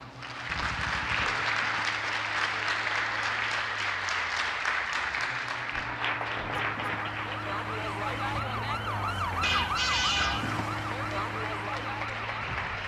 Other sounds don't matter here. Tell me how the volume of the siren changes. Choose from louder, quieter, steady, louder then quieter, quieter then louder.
louder.